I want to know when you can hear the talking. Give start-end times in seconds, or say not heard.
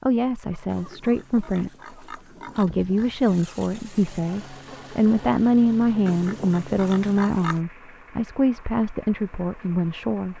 0.0-1.9, 2.5-10.3.